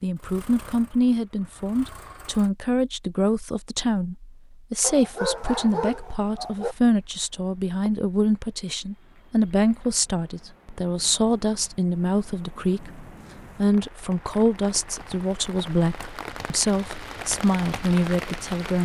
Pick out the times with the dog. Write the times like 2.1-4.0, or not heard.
4.8-6.8.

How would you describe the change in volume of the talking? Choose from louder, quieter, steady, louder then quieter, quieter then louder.
steady.